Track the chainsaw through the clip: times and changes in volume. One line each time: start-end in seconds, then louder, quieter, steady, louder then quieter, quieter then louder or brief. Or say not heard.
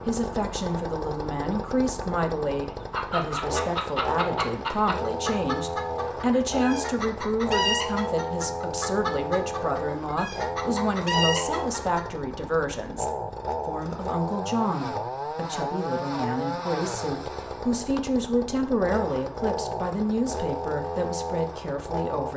0.0-22.3 steady.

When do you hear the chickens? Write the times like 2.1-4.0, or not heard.
2.6-12.1.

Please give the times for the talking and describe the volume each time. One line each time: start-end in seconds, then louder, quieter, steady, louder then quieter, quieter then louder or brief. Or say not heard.
0.1-22.3 steady.